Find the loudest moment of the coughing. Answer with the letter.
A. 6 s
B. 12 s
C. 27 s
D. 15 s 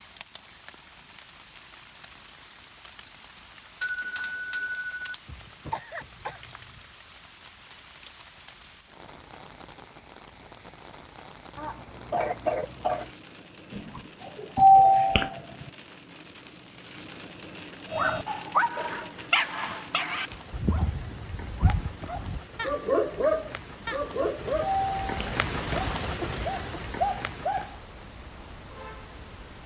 B.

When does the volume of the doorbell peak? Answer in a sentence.
The volume of the doorbell peaks at 15 seconds.